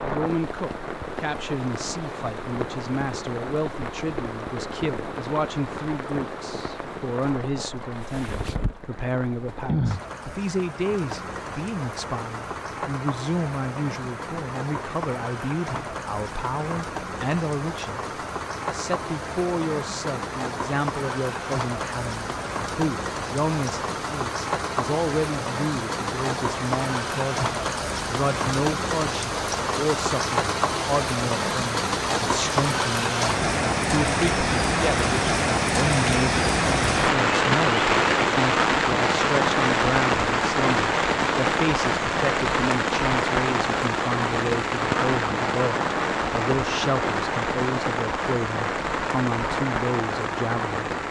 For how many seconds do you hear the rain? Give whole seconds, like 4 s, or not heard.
51 s.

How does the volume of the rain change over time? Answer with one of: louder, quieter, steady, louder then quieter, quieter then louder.
louder.